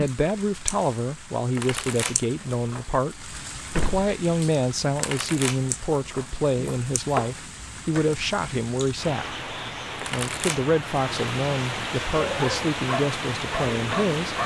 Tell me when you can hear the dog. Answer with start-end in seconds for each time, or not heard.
12.2-14.4.